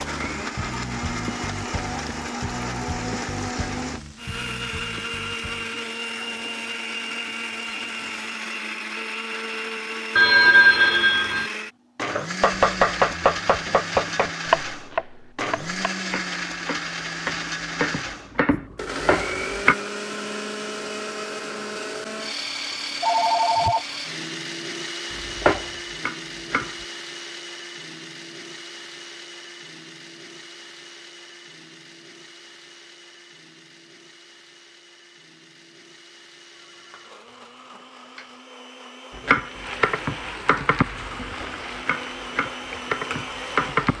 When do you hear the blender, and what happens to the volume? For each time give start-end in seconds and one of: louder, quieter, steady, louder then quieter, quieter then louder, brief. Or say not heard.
0.0-43.9 quieter.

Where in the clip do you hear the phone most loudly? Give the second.
11 s.